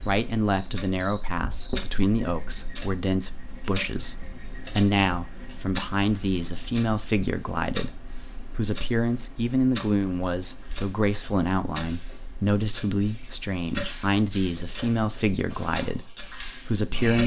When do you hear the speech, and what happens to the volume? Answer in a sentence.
The speech can be heard from 0.0 to 17.2 s, at a steady volume.